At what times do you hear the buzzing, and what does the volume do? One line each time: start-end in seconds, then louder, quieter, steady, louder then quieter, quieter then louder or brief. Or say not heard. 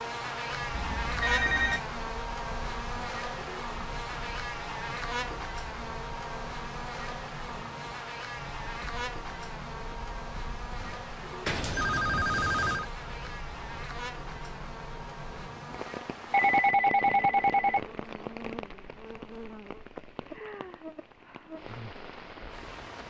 0.0-23.0 quieter.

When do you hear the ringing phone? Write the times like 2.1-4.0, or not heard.
0.7-1.8, 11.4-12.9, 16.3-18.2.